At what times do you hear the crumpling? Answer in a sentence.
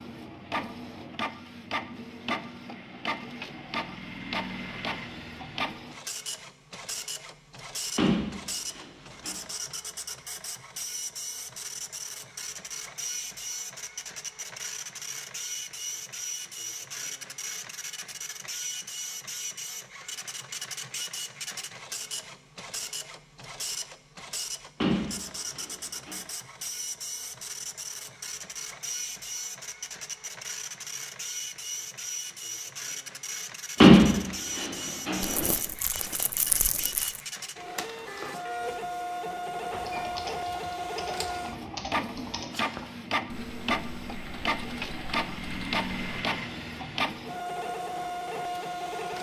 You can hear the crumpling from 35.2 to 37.2 s.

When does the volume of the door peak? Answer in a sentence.
The volume of the door peaks at 34 seconds.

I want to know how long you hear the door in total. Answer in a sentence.
The door can be heard for 4 seconds in total.